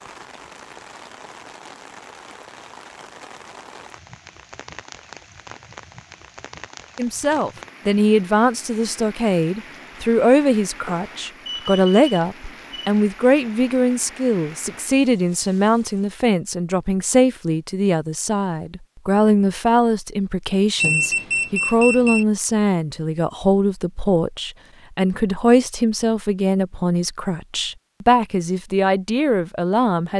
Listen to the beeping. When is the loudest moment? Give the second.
21 s.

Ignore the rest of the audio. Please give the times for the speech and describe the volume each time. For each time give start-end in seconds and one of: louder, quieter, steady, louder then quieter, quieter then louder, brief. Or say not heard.
7.0-30.1 steady.